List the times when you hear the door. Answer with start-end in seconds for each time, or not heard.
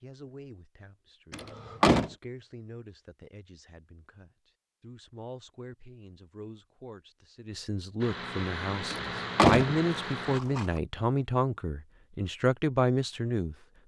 1.3-2.1, 8.9-10.7.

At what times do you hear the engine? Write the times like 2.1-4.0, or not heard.
8.0-10.4.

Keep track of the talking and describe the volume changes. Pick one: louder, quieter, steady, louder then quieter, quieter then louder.
louder.